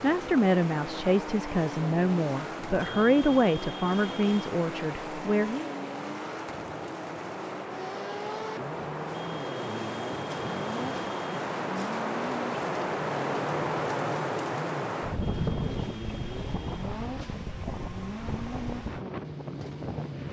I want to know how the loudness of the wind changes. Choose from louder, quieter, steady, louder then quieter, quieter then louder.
louder then quieter.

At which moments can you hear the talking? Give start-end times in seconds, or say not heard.
0.0-5.8.